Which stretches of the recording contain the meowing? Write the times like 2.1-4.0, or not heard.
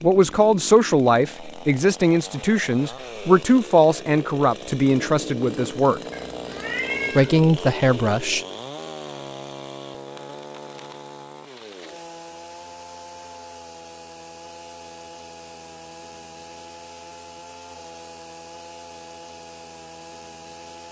6.1-7.3.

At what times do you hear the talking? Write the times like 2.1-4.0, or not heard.
0.0-6.0, 7.2-8.4.